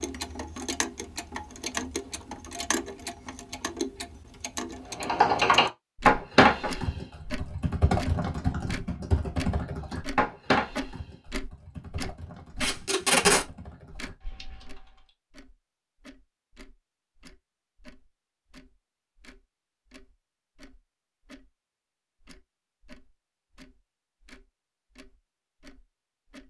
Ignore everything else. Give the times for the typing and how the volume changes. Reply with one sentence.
The typing can be heard from 5.0 to 15.1 s, getting quieter.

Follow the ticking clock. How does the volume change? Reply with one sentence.
The loudness of the ticking clock goes down.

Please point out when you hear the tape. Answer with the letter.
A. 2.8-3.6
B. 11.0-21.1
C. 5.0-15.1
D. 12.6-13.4
D.